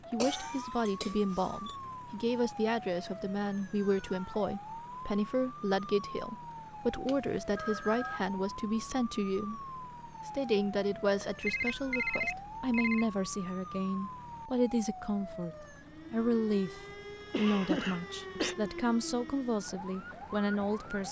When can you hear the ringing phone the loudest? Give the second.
12 s.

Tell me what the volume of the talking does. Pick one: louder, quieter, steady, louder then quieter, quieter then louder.
steady.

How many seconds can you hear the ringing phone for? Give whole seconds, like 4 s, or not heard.
3 s.